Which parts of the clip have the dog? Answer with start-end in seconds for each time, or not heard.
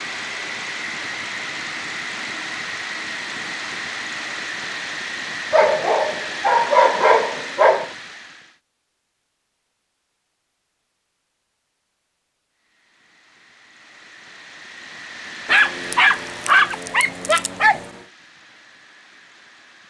5.5-7.9, 15.4-17.9.